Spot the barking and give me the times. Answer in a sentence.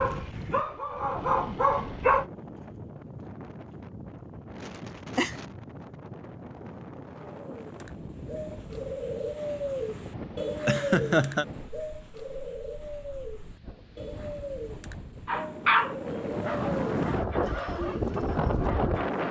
The barking can be heard from 0.0 to 2.2 s and from 15.2 to 19.2 s.